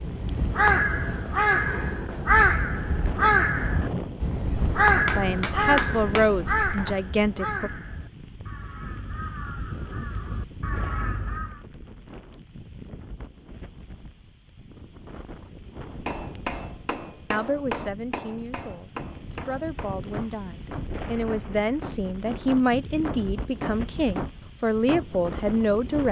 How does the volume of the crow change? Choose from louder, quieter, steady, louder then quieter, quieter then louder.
quieter.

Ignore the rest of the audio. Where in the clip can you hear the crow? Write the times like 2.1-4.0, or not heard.
0.0-11.6.